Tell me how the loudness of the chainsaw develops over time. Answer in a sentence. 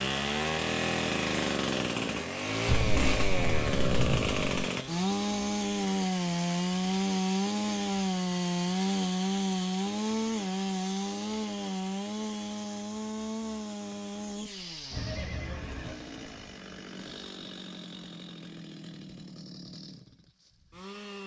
The loudness of the chainsaw goes down.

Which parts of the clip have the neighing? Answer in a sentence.
The neighing can be heard from 14.9 to 15.9 s.